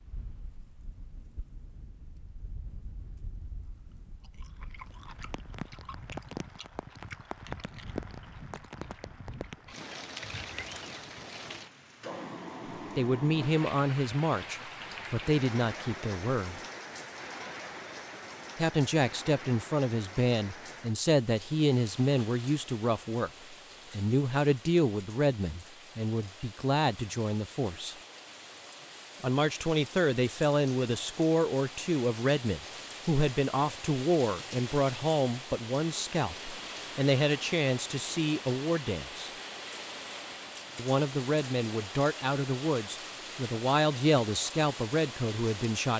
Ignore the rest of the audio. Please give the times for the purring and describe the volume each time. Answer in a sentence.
You can't hear the purring here.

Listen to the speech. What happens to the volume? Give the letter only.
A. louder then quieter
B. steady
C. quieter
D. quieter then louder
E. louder
B.